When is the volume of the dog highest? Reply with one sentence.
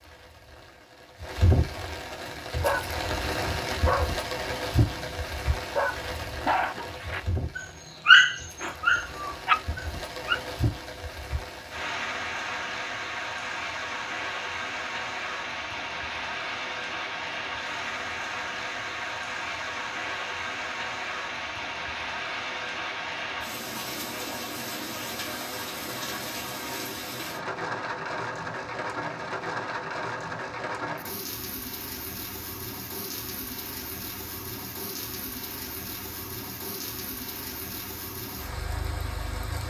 The loudest moment of the dog is at 8 seconds.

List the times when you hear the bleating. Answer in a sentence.
You can't hear the bleating here.